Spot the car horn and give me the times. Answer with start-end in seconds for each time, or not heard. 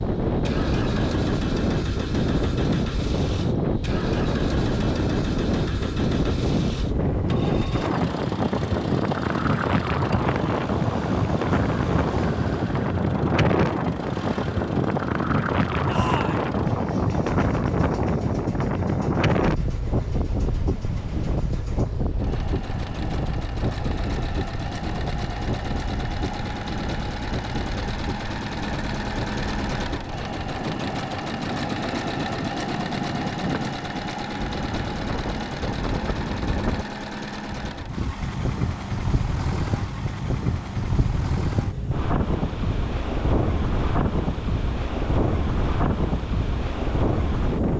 not heard.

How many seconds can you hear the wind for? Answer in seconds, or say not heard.
48 s.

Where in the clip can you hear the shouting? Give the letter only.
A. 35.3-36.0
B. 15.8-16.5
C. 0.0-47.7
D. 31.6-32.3
B.